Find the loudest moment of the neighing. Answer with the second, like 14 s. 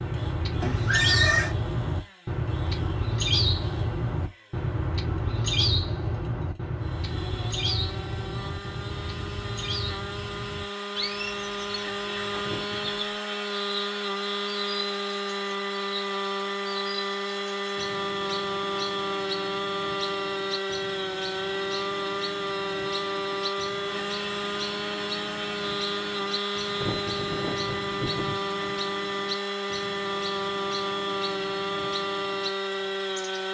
1 s.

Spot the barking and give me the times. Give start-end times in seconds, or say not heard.
not heard.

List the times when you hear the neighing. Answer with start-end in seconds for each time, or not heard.
0.6-1.6, 12.4-13.0, 26.8-28.4.